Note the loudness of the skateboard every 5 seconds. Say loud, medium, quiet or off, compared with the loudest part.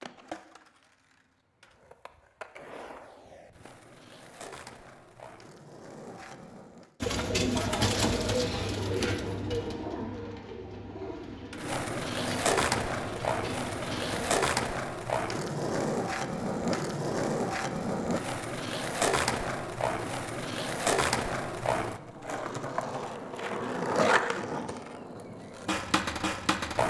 quiet, quiet, loud, loud, loud, loud.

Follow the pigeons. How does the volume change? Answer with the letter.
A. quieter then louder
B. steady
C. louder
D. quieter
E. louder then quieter
D.